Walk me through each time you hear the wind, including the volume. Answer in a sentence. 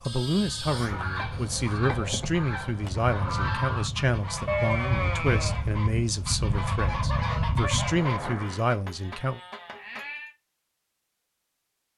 The wind can be heard from 0.0 to 8.7 s, getting louder.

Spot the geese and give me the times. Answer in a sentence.
The geese can be heard from 0.7 to 8.2 s.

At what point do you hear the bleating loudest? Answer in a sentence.
The loudest moment of the bleating is at 5 seconds.